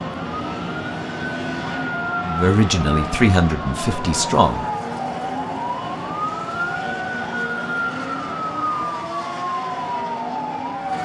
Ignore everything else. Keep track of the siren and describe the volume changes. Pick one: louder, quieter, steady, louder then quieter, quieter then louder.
steady.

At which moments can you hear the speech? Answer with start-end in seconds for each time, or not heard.
2.2-4.7.